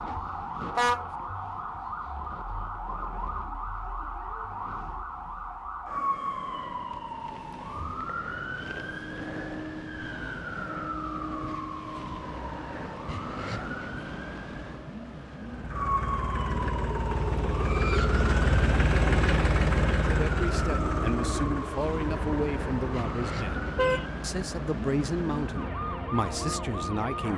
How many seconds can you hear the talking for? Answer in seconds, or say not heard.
7 s.